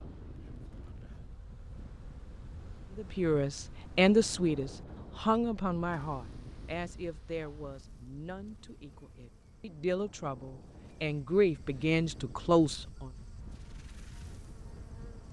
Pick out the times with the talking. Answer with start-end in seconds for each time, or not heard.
3.0-13.1.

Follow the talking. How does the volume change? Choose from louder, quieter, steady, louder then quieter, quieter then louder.
quieter then louder.